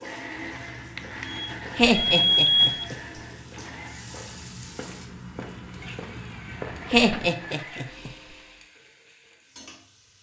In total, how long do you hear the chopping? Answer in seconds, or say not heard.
not heard.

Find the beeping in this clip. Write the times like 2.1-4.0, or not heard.
0.9-2.9.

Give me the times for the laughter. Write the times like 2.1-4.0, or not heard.
1.8-3.0, 6.9-8.1.